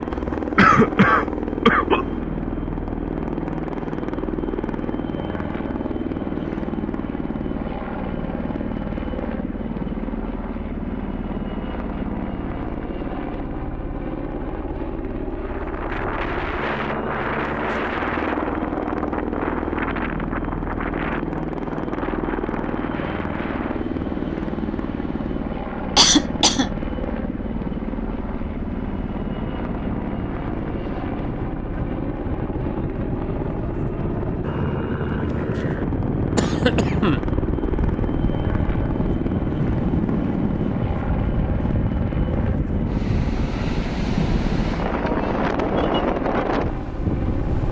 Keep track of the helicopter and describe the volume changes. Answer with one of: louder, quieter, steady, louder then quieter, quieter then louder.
steady.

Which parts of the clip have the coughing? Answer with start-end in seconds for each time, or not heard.
0.1-2.0, 25.9-26.7, 36.4-37.2.